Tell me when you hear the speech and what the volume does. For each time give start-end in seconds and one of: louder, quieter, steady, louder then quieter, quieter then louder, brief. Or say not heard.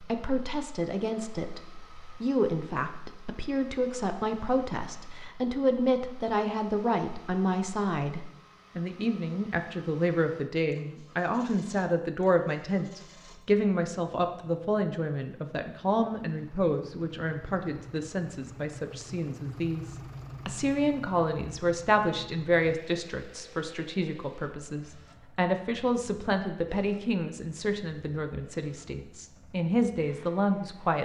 0.0-31.0 steady.